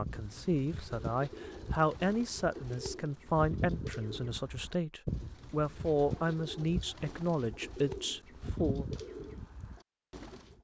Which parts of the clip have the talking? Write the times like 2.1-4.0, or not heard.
0.0-8.8.